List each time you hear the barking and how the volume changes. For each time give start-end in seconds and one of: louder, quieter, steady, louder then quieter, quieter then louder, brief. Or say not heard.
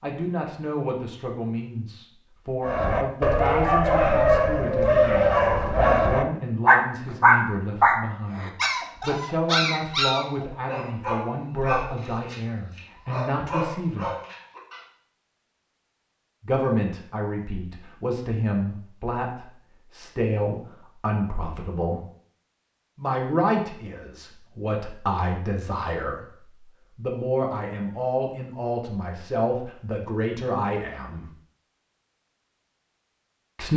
2.6-14.8 quieter.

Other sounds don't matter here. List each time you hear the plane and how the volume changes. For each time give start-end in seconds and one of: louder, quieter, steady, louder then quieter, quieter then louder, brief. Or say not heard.
not heard.